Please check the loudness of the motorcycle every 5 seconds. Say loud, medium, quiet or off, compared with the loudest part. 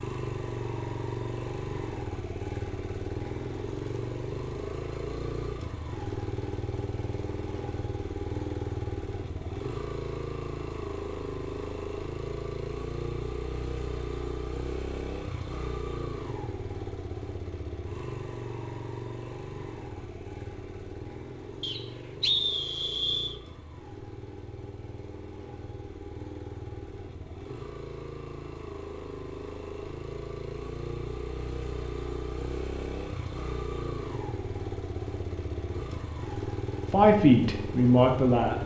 loud, loud, loud, loud, medium, medium, loud, loud.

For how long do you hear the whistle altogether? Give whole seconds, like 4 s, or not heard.
2 s.